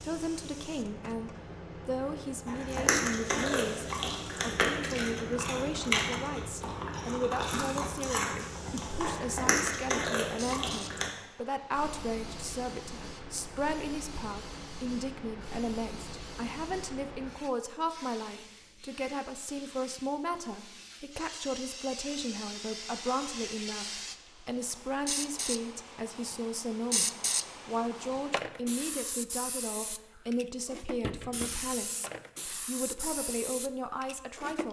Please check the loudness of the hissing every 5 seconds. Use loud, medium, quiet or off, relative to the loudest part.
medium, medium, medium, medium, medium, loud, loud.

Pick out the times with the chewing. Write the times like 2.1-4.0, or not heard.
2.5-11.1.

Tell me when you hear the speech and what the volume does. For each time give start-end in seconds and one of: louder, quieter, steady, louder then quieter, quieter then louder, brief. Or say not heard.
0.0-34.6 steady.